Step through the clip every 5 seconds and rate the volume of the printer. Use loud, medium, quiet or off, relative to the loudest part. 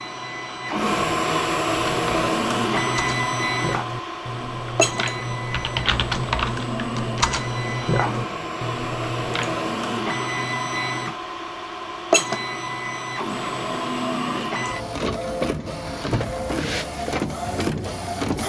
loud, medium, loud, loud.